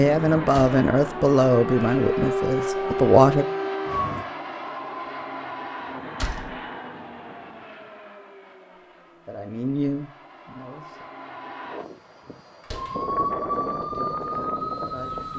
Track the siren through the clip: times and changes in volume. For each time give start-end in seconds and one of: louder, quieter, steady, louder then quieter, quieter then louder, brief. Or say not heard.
0.0-4.3 louder
12.8-15.3 brief.